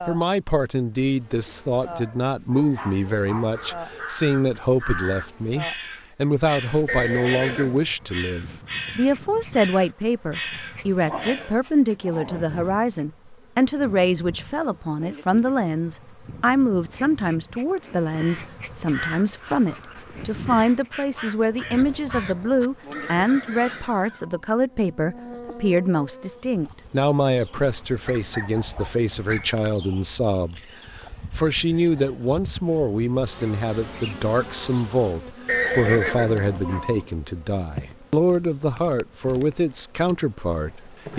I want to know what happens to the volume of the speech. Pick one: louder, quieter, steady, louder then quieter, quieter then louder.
steady.